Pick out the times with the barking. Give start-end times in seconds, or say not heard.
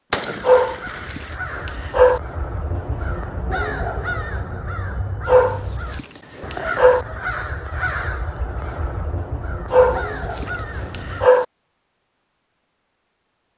0.4-2.2, 5.2-7.0, 9.7-11.4.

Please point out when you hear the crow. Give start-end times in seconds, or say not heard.
0.2-11.3.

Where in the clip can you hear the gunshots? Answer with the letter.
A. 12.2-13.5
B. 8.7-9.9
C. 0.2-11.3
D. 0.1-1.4
D.